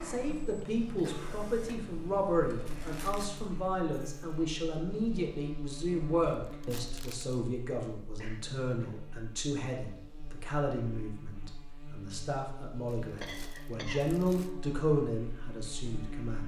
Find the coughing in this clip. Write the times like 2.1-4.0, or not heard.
0.6-1.4, 8.2-9.1, 13.2-14.1.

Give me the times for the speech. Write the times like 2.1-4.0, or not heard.
0.0-16.4.